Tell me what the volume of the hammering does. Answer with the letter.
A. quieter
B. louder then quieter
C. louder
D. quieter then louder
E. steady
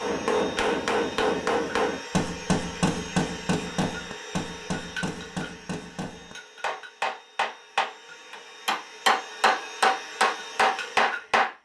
D.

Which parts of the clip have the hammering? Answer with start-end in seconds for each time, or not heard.
0.0-11.6.